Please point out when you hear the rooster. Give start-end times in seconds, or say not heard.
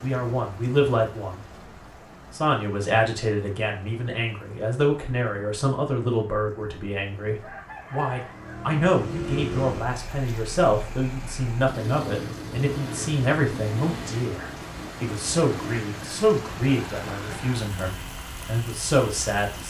7.4-8.8.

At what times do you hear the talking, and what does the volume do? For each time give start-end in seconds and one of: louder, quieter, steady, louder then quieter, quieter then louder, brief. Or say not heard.
0.0-1.6 brief
2.3-19.6 steady.